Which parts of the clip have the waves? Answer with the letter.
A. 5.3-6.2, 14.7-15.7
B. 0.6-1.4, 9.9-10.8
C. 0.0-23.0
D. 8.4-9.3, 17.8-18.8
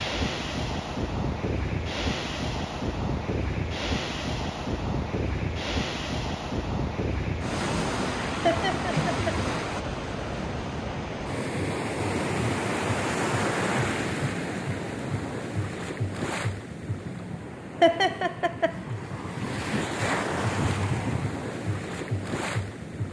C.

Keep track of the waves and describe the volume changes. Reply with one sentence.
The volume of the waves stays about the same.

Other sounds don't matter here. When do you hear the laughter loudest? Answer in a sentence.
The volume of the laughter peaks at 18 seconds.